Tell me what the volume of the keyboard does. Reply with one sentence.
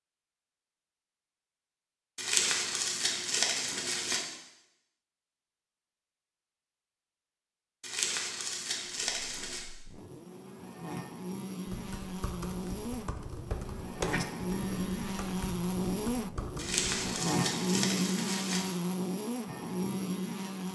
The loudness of the keyboard goes up, then down.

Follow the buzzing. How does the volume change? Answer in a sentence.
The loudness of the buzzing goes up.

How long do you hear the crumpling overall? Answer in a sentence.
You can hear the crumpling for 6 seconds altogether.